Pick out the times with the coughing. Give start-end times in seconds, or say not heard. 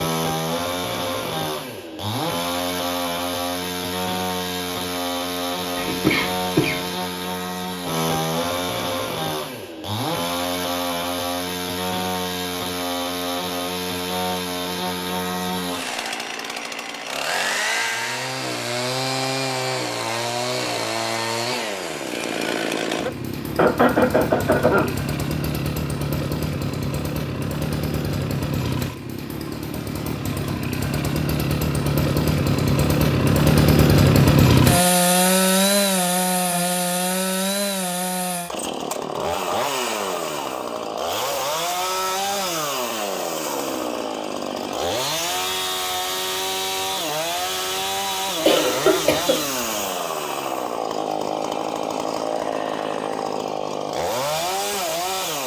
5.8-6.8, 23.6-24.9, 48.5-49.9.